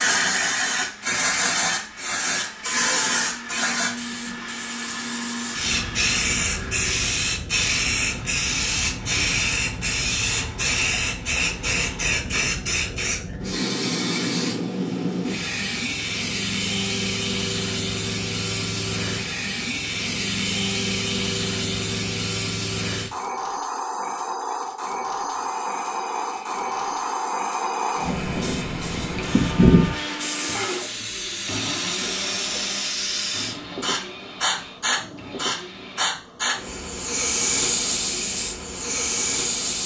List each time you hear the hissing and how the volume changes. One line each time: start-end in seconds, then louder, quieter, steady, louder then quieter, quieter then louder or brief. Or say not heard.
0.0-39.8 steady.